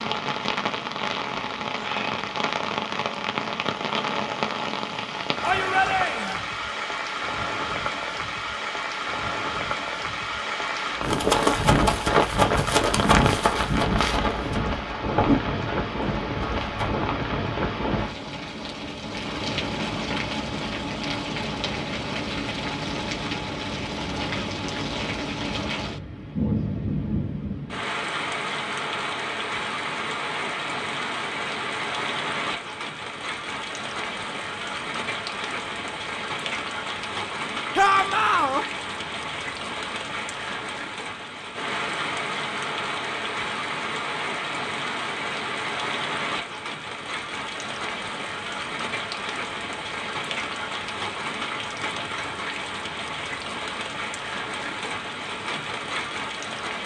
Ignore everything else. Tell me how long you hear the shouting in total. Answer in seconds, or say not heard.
2 s.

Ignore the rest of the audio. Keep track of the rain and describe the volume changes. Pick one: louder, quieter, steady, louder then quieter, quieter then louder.
steady.